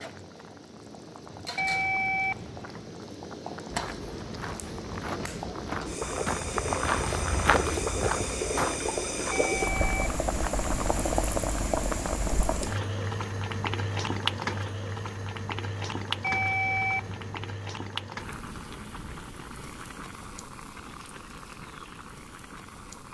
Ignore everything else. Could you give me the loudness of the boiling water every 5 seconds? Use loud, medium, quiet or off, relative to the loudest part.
medium, loud, loud, medium, quiet.